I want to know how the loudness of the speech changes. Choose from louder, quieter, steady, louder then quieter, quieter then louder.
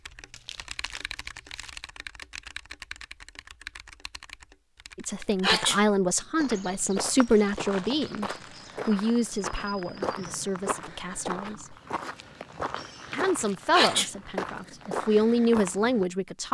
quieter then louder.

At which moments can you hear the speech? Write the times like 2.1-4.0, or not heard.
5.0-11.8, 13.1-16.4.